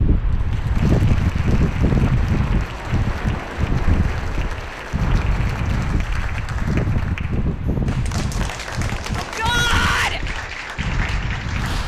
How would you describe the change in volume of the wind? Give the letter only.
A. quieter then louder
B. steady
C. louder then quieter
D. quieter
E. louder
D.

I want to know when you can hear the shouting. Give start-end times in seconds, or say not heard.
9.2-10.2.